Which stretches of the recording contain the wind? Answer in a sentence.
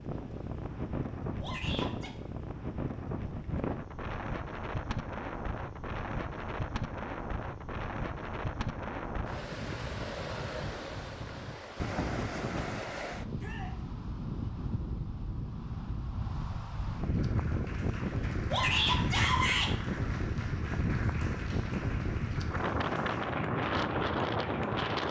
You can hear the wind from 0.0 to 25.0 s.